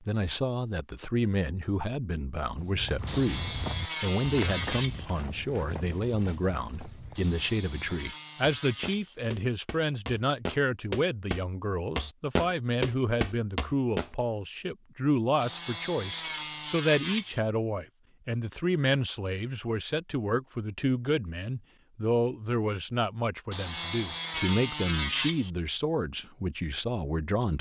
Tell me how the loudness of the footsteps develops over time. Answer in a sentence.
The loudness of the footsteps goes down, then up.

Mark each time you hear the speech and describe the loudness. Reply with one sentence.
The speech can be heard from 0.0 to 27.5 s, at a steady volume.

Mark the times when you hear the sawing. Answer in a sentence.
The sawing can be heard from 3.0 to 5.0 s, from 7.2 to 9.2 s, from 15.4 to 17.4 s and from 23.5 to 25.5 s.